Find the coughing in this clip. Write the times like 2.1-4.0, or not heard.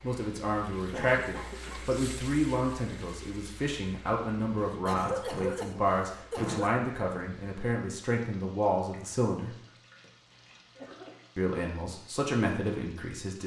0.9-1.9, 4.5-6.8, 10.0-11.2.